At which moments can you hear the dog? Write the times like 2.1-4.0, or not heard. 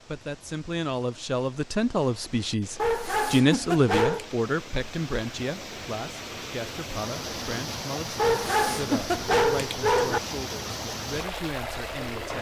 2.8-4.2, 8.2-10.2.